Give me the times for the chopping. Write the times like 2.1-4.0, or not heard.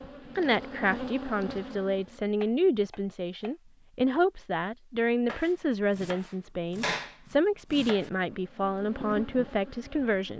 2.4-3.5, 5.2-8.1.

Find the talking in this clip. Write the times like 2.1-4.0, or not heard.
0.3-10.3.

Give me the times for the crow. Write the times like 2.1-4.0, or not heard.
not heard.